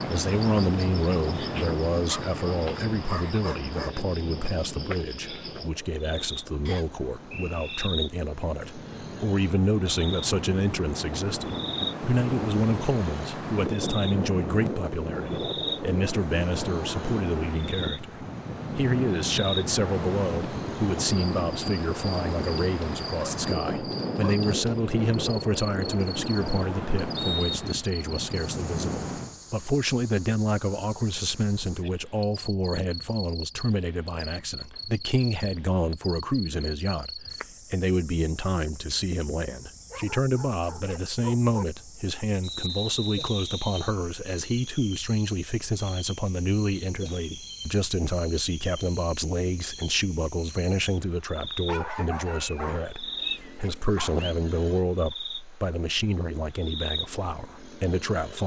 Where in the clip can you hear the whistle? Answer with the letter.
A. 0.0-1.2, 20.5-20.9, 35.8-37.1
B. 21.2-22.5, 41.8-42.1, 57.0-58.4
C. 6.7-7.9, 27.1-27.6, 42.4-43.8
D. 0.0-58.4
C.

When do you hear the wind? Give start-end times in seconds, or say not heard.
0.0-29.4.